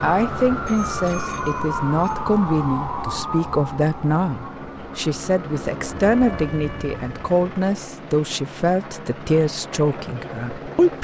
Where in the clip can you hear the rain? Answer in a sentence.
The rain can't be heard in this clip.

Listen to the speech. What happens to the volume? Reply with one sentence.
The volume of the speech stays about the same.